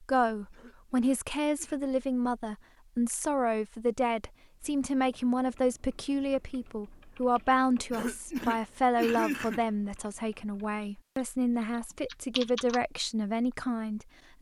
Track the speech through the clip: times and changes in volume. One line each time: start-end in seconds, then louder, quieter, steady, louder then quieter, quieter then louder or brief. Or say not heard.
0.0-14.3 steady.